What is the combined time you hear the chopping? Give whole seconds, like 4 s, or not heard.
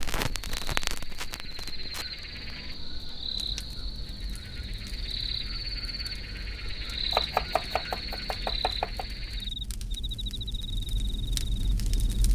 2 s.